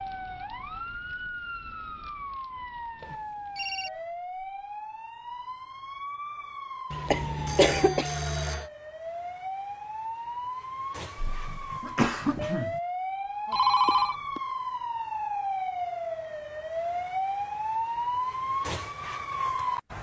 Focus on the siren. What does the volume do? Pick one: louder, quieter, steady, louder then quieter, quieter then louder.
louder.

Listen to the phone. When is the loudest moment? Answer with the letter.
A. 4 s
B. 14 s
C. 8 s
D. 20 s
B.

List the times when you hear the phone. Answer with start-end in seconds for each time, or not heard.
3.0-3.9, 6.9-8.7, 13.5-14.4.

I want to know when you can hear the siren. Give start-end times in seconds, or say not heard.
0.0-19.9.